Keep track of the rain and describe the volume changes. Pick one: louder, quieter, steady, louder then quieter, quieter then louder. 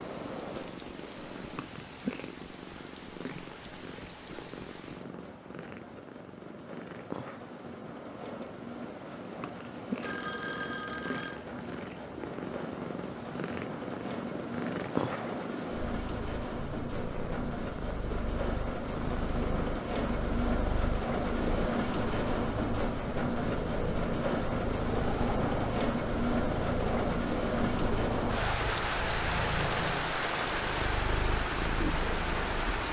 louder.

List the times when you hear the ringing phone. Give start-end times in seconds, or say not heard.
10.0-11.4.